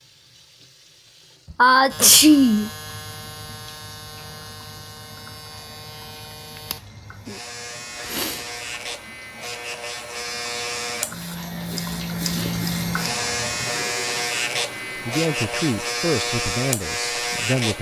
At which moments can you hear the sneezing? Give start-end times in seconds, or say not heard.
1.6-2.7, 8.0-8.4, 12.2-12.7.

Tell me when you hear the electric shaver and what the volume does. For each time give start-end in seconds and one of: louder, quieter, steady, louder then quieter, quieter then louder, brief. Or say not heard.
1.9-17.7 louder.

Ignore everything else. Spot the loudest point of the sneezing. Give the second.
2 s.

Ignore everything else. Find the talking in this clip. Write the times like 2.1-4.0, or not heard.
14.9-17.7.